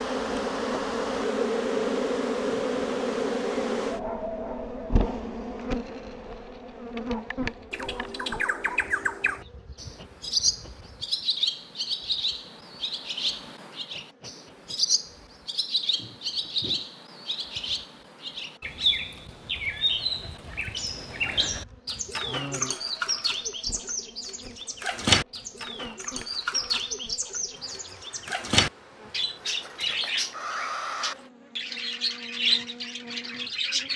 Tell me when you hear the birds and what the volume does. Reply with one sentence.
The birds can be heard from 7.7 to 33.9 s, at a steady volume.